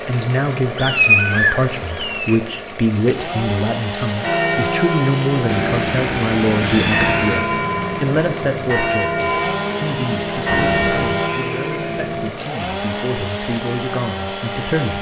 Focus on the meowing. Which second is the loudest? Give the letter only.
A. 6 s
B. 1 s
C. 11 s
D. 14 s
B.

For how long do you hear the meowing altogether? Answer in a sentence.
You can hear the meowing for 5 seconds altogether.